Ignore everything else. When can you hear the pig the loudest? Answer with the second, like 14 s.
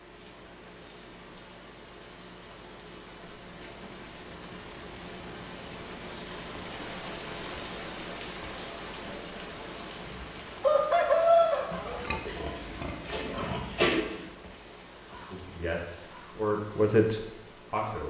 14 s.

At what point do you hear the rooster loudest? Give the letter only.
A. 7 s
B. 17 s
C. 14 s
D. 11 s
D.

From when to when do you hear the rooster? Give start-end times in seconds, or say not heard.
10.1-12.1.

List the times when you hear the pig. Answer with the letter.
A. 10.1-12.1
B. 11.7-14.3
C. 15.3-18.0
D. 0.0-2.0
B.